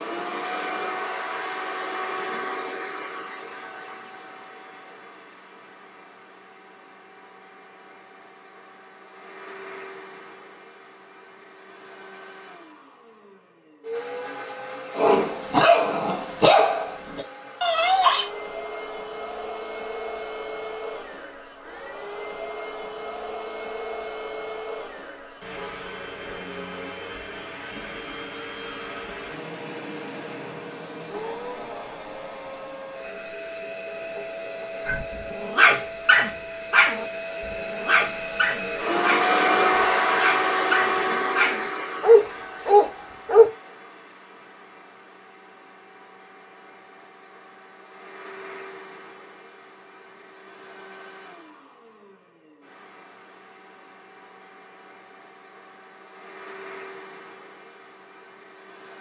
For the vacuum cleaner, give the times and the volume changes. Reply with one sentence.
You can hear the vacuum cleaner from 0.0 to 58.9 s, getting louder then quieter.